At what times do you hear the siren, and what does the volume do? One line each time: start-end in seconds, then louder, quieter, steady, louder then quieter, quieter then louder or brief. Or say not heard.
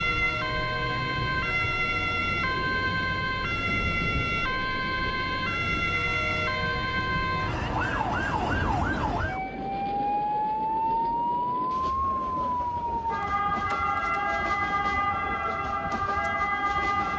0.0-17.1 steady.